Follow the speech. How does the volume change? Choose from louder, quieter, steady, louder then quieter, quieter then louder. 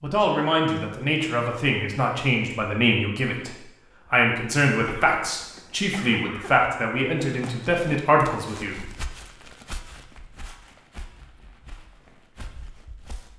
steady.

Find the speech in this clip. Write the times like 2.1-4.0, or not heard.
0.0-8.8.